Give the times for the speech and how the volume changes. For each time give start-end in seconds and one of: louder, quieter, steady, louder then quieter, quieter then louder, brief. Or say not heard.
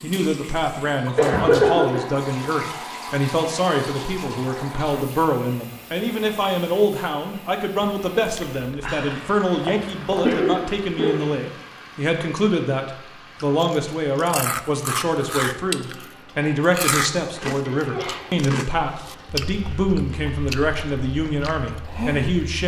0.0-22.6 steady.